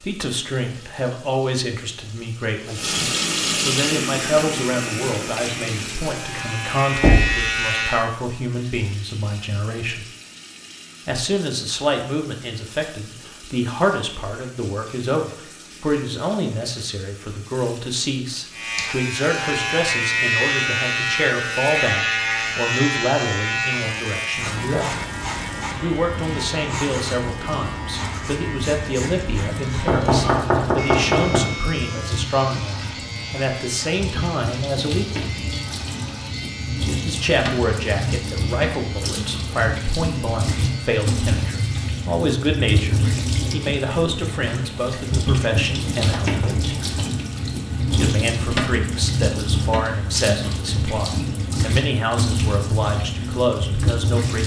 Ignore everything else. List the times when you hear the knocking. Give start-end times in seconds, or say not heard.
7.0-7.5, 29.9-31.4, 46.1-47.1.